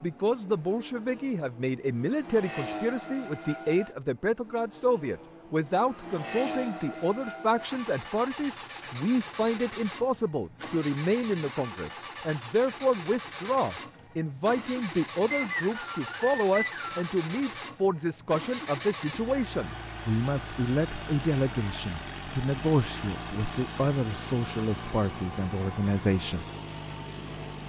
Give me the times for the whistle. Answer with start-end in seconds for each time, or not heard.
15.3-17.1.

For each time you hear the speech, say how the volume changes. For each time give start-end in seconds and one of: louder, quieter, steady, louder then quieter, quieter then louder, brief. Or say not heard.
0.0-26.4 steady.